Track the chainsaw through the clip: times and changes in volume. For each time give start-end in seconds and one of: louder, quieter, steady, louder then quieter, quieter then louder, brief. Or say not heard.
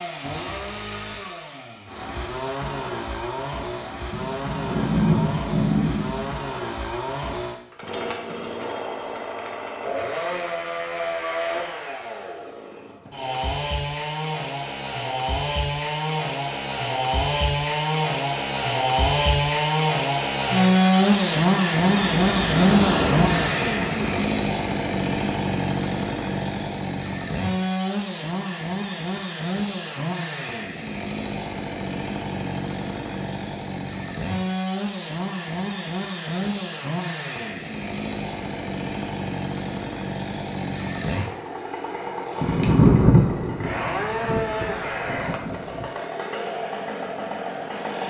0.0-48.0 louder then quieter.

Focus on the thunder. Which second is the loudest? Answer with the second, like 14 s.
43 s.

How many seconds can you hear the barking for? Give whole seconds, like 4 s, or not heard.
not heard.